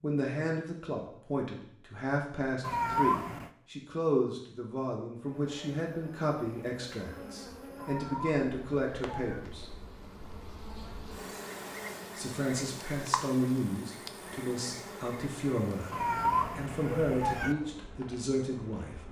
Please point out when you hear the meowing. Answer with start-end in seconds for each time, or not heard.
2.6-3.5, 7.8-9.4, 15.9-17.6.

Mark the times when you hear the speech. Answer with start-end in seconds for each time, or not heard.
0.0-9.7, 12.2-18.9.